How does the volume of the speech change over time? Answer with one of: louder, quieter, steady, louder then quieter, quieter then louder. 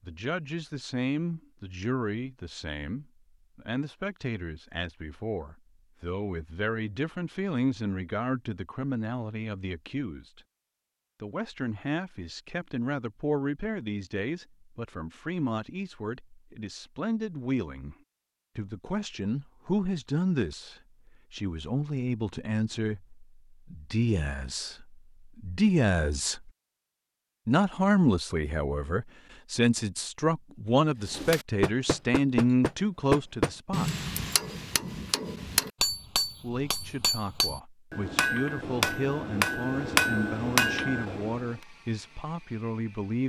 louder then quieter.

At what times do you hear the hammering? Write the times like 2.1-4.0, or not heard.
31.1-41.5.